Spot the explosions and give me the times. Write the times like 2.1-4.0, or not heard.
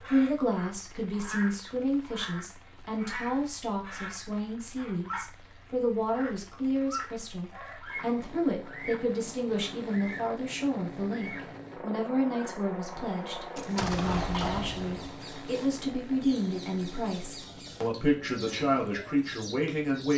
13.6-15.2.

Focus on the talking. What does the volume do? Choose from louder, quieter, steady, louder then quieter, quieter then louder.
steady.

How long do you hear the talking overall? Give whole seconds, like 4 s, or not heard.
20 s.